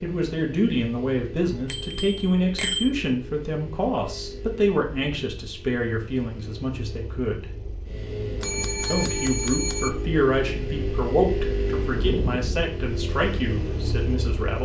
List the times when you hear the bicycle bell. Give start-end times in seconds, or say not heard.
1.6-2.9, 8.4-9.9.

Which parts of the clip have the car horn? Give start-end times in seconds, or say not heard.
not heard.